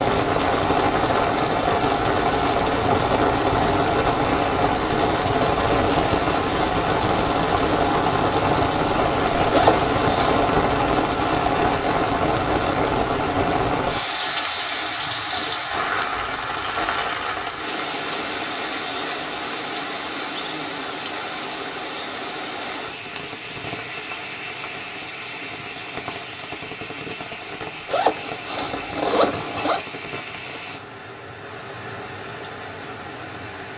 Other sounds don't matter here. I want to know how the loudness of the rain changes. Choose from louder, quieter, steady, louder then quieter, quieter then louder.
quieter.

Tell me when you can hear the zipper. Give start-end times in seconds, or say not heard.
9.5-10.6, 27.9-29.8.